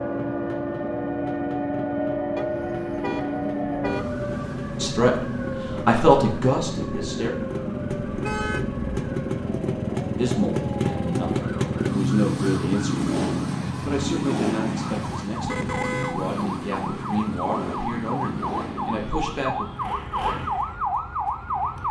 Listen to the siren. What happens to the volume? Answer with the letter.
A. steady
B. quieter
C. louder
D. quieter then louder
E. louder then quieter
D.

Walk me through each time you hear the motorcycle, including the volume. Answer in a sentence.
You can hear the motorcycle from 0.0 to 21.8 s, getting louder then quieter.